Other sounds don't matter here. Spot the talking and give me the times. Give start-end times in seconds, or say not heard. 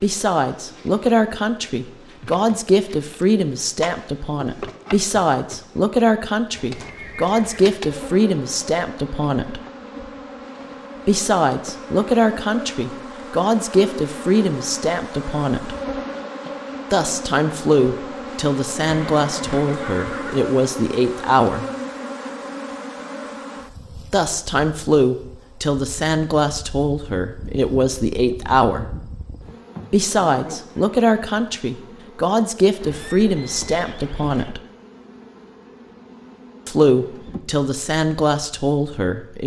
0.0-9.6, 11.1-15.8, 16.9-21.6, 24.1-28.9, 29.9-34.6, 36.6-39.4.